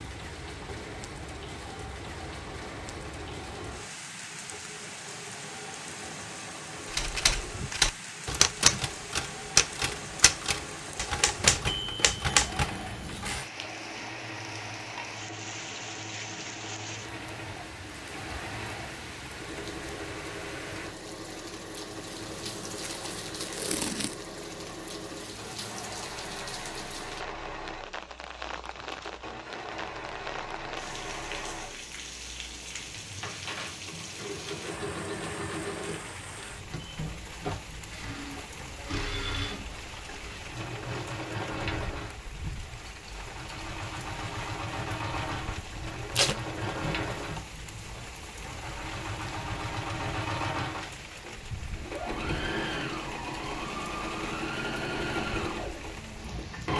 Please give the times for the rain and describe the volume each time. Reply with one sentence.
The rain can be heard from 0.0 to 56.7 s, at a steady volume.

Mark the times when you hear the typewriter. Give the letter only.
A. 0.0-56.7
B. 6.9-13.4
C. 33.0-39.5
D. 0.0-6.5
B.